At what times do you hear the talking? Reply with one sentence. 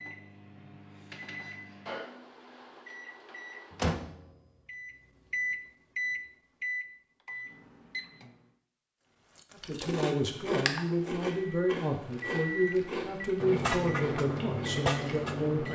You can hear the talking from 9.6 to 15.7 s.